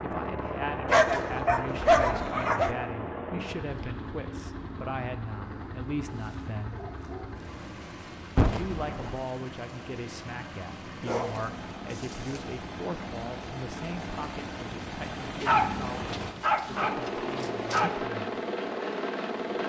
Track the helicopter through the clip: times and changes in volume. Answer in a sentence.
You can hear the helicopter from 0.0 to 19.6 s, getting quieter then louder.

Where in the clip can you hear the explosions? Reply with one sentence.
The explosions can be heard from 8.3 to 9.2 s.